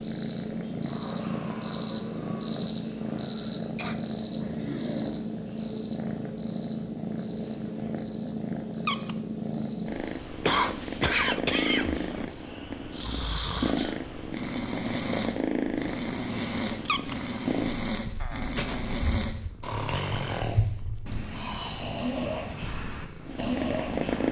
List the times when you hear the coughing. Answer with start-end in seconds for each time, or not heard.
3.8-5.0, 10.4-12.2, 18.2-19.0.